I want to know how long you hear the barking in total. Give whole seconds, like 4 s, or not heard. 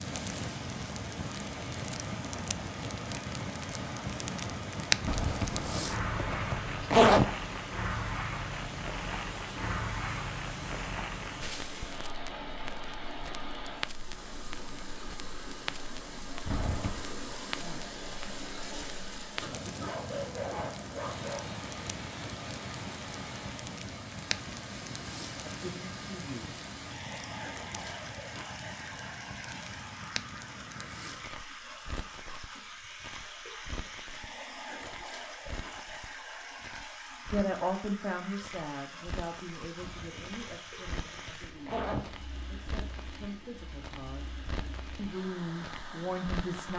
2 s.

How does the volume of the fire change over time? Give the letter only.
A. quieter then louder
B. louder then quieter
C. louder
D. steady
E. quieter
E.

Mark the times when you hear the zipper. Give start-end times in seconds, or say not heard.
5.0-7.2, 16.4-17.1, 39.8-42.1.